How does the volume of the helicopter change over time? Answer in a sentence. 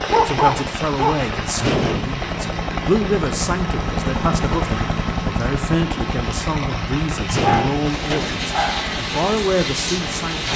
The volume of the helicopter goes up, then down.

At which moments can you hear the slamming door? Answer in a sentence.
The slamming door can be heard from 1.6 to 2.1 s and from 7.3 to 8.5 s.